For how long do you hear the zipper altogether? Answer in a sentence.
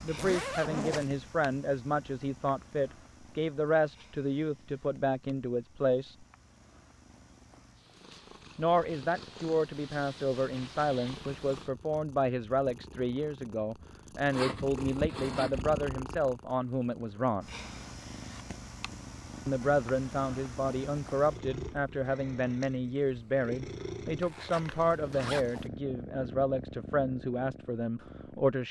The zipper can be heard for 4 seconds in total.